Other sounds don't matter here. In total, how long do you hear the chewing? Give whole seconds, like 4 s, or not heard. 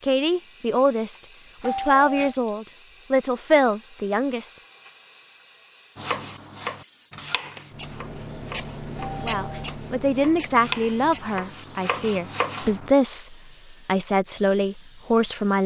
not heard.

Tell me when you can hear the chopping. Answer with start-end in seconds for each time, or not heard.
6.0-12.9.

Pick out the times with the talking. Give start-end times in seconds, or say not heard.
0.0-4.5, 9.2-15.6.